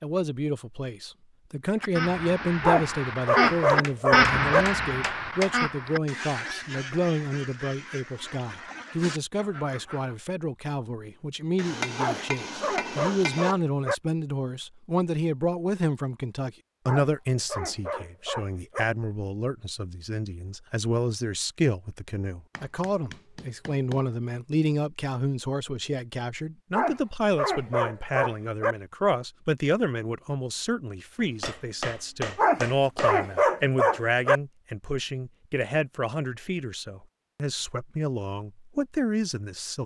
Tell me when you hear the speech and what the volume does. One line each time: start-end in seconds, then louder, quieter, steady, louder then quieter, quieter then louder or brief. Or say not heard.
0.0-39.8 steady.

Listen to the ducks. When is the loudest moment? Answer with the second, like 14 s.
4 s.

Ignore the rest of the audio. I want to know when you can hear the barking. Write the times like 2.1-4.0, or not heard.
2.6-4.7, 11.9-13.9, 16.9-18.9, 26.7-28.8, 32.4-34.4.